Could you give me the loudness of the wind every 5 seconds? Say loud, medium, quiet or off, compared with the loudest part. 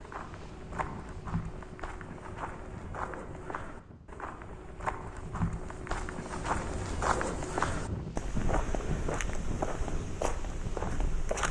medium, loud, loud.